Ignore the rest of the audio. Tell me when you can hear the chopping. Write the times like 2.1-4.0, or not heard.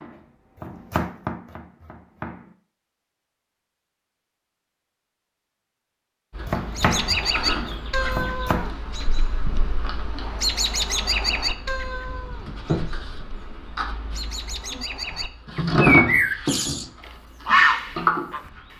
0.0-2.5, 6.4-8.7.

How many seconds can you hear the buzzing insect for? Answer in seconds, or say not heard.
12 s.